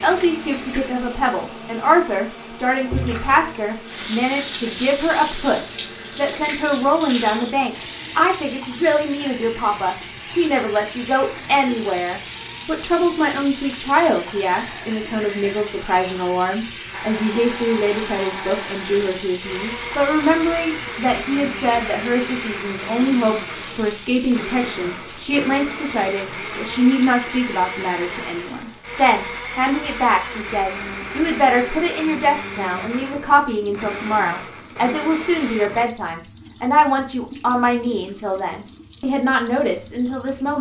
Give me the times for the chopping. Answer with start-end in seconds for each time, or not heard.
not heard.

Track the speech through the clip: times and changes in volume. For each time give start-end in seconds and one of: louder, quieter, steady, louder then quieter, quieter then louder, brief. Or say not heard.
0.0-40.5 steady.